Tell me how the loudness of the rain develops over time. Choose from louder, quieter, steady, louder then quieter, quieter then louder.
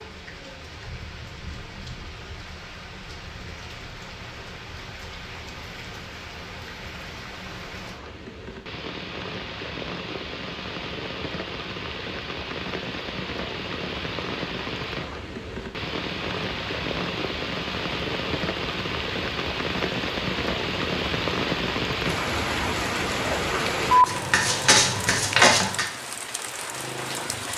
louder.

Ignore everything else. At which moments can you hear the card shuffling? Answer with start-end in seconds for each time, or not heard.
24.1-25.9.